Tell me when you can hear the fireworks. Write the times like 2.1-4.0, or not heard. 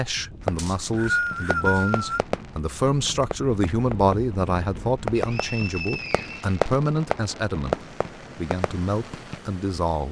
0.4-9.4.